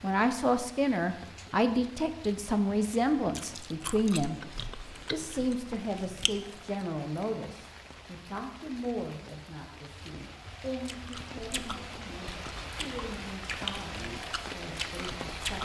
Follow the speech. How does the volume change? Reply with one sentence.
The volume of the speech goes down.